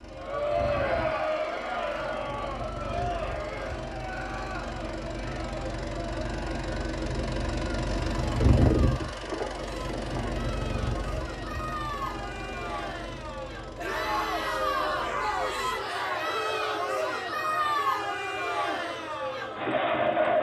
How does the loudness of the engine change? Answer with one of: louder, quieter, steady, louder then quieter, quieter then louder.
louder then quieter.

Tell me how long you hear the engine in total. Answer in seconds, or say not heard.
20 s.